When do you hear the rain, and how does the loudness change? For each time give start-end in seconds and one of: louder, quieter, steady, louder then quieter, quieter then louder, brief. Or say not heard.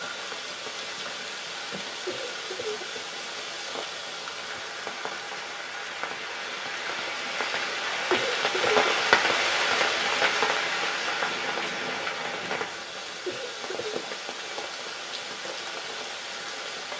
0.0-16.9 louder then quieter.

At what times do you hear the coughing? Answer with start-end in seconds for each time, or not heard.
2.0-3.2, 8.1-8.8, 13.2-13.9.